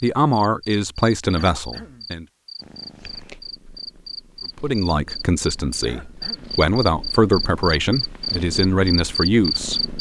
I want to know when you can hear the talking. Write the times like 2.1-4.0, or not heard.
0.0-2.2, 4.5-9.9.